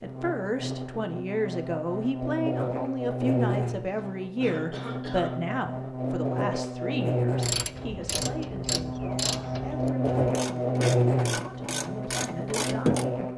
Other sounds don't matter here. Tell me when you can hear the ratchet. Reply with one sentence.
The ratchet can be heard from 7.3 to 13.1 s.